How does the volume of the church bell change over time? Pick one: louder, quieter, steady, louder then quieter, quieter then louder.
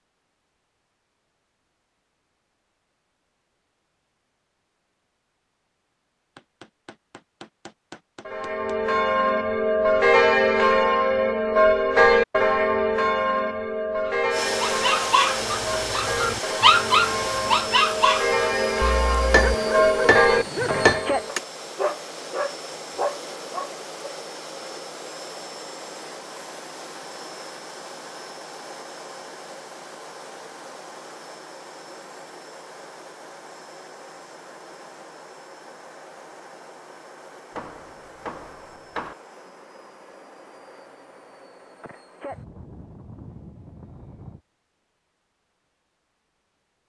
quieter then louder.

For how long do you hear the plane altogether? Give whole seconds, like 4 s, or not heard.
30 s.